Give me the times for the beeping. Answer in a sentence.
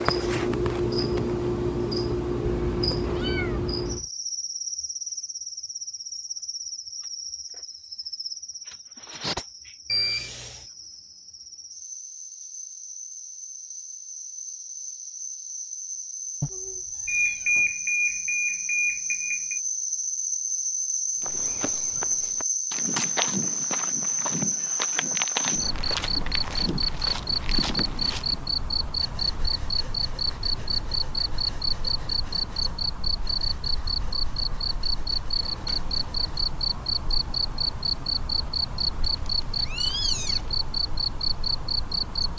You can hear the beeping from 9.8 to 10.7 s, from 17.1 to 19.6 s and from 35.4 to 35.8 s.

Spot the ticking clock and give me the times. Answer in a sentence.
You can't hear the ticking clock here.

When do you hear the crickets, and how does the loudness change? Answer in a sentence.
The crickets can be heard from 0.0 to 42.3 s, getting quieter then louder.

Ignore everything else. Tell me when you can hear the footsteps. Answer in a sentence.
You can hear the footsteps from 21.2 to 28.4 s.